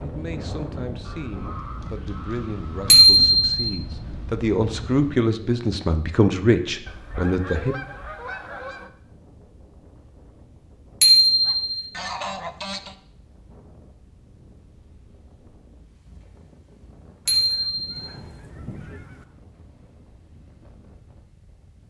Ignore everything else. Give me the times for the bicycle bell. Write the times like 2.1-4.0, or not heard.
2.9-3.8, 11.0-11.8, 17.2-17.9.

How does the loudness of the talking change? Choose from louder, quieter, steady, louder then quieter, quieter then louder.
louder.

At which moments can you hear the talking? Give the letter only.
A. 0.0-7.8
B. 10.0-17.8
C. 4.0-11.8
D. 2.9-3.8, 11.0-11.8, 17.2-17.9
A.